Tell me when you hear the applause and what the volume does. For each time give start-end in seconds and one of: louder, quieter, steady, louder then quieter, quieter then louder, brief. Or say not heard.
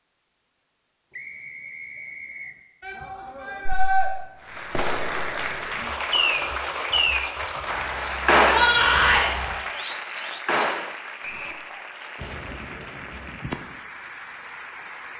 4.4-15.1 quieter.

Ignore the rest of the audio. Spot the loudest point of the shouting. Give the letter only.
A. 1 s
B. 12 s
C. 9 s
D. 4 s
C.